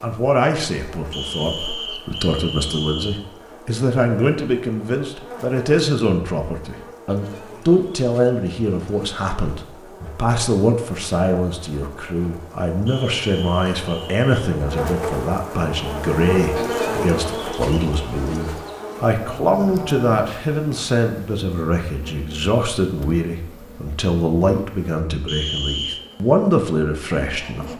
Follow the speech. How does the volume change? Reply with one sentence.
The loudness of the speech stays about the same.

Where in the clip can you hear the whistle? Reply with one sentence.
You can hear the whistle from 1.1 to 3.2 s, from 12.8 to 14.5 s and from 25.2 to 26.0 s.